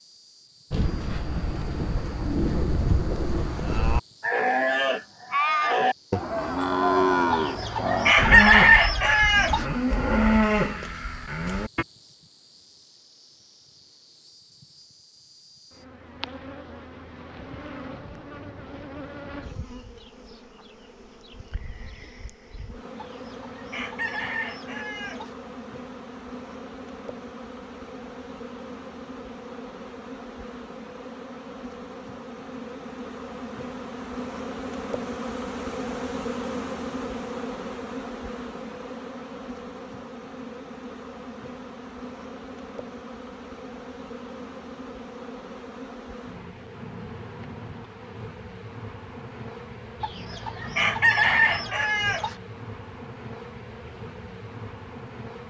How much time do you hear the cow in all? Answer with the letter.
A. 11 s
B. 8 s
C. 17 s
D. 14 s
A.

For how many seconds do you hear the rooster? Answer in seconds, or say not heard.
7 s.